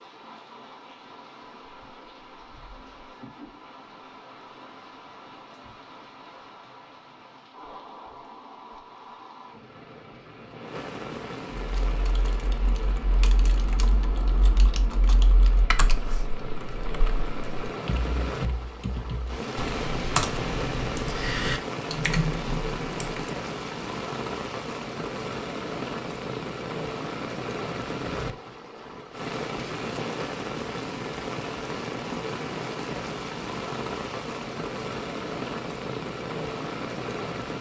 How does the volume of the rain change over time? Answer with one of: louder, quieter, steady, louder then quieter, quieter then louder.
louder.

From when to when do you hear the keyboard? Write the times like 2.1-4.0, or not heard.
11.6-23.4.